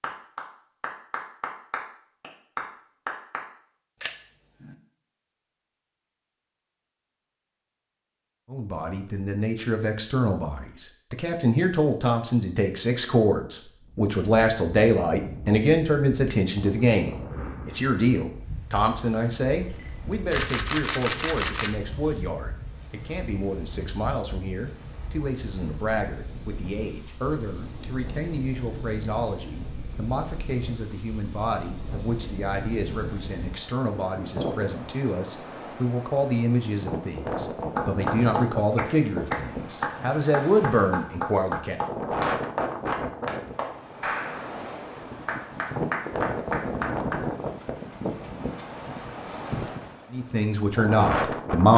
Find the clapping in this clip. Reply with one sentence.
You can hear the clapping from 0.0 to 3.5 s and from 37.8 to 47.2 s.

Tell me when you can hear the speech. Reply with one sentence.
You can hear the speech from 8.5 to 41.8 s and from 50.1 to 51.7 s.